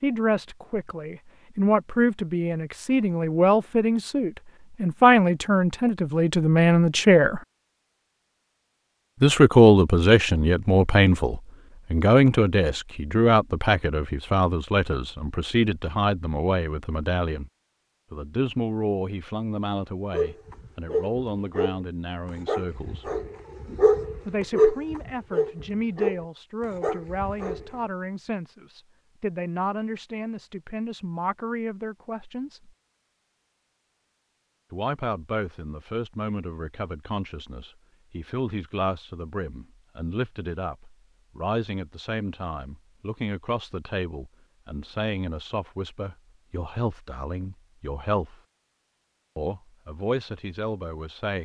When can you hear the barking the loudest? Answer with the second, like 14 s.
25 s.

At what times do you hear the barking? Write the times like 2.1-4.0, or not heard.
20.1-27.8.